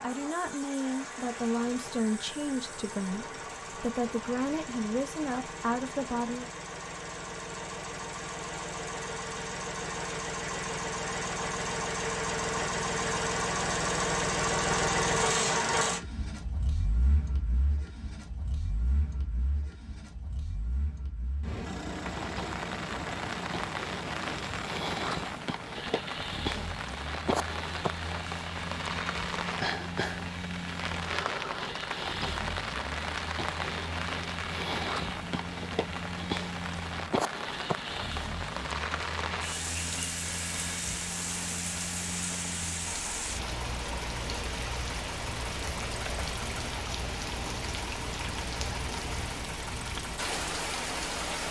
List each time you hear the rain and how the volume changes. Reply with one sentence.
The rain can be heard from 21.8 to 51.4 s, at a steady volume.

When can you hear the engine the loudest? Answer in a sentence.
The loudest moment of the engine is at 15 seconds.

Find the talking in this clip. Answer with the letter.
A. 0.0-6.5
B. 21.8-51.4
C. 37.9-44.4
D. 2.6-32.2
A.